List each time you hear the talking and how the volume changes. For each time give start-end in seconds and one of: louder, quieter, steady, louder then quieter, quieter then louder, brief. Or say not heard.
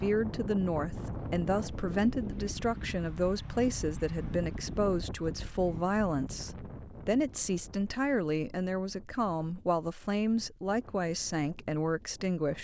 0.0-12.5 steady.